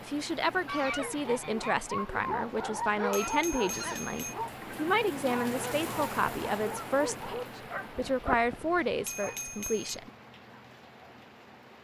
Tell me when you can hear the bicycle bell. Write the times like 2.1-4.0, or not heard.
2.9-4.3, 8.8-10.0.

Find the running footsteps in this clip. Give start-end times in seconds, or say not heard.
not heard.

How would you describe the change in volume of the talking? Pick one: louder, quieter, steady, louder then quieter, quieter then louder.
steady.